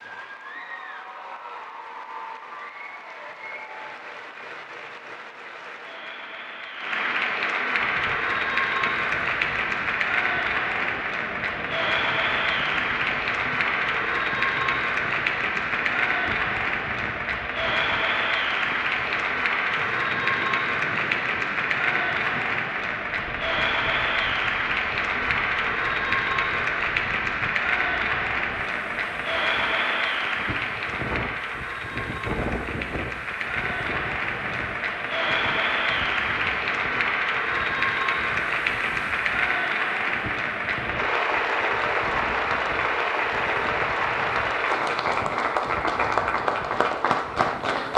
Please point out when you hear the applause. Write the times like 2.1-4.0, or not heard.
0.0-47.9.